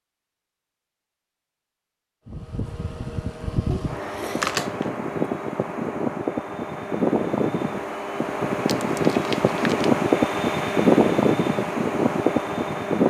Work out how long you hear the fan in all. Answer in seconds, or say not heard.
11 s.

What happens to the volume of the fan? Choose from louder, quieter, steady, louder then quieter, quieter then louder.
louder.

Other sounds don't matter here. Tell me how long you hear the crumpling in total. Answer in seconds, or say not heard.
2 s.